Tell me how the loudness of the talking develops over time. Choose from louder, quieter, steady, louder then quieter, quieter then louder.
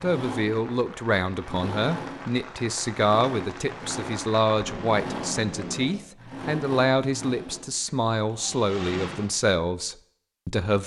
steady.